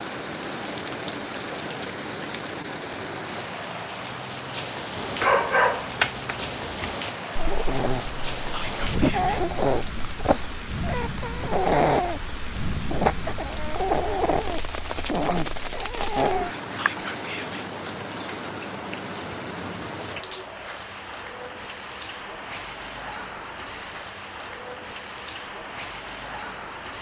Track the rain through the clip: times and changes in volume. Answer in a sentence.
The rain can be heard from 0.0 to 26.9 s, at a steady volume.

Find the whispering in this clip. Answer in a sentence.
You can hear the whispering from 8.5 to 9.4 s and from 16.8 to 17.6 s.